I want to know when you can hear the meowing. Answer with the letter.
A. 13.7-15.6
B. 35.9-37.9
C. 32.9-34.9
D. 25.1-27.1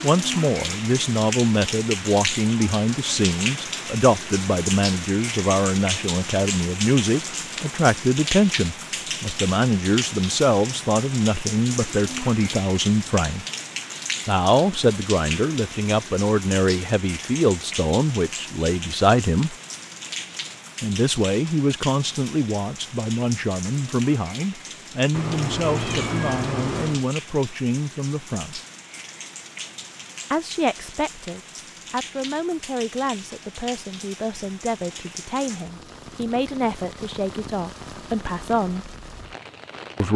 D.